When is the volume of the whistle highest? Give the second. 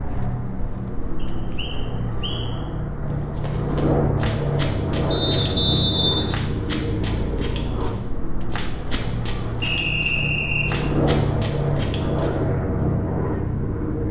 6 s.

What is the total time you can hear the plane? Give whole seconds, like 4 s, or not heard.
14 s.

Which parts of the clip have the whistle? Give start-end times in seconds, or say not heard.
1.2-2.5, 5.1-6.4, 9.6-10.8.